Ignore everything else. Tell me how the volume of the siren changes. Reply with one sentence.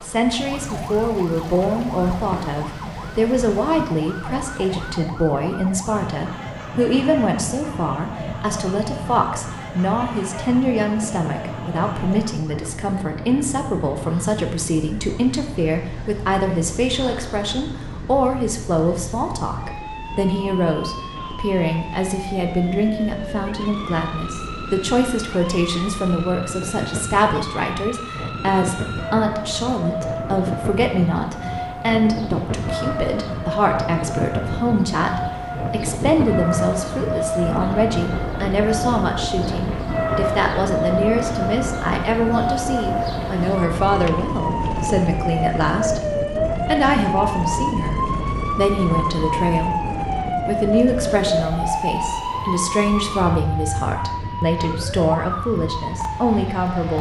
The loudness of the siren goes up.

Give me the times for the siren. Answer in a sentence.
The siren can be heard from 0.0 to 56.9 s.